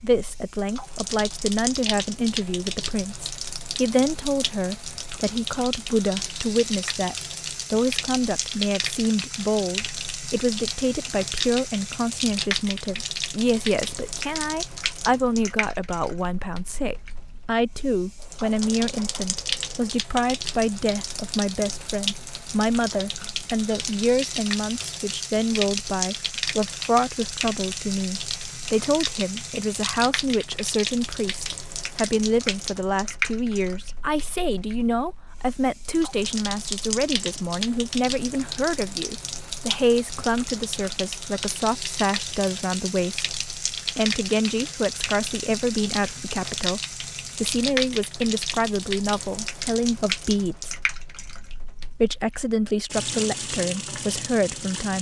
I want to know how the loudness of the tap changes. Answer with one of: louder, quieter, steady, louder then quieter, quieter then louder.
steady.